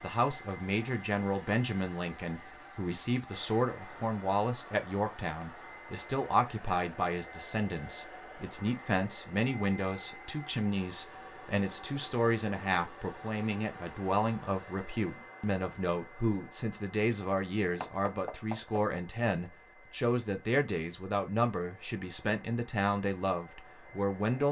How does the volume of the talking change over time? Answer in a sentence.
The loudness of the talking stays about the same.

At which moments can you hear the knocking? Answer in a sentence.
You can hear the knocking from 17.8 to 19.0 s.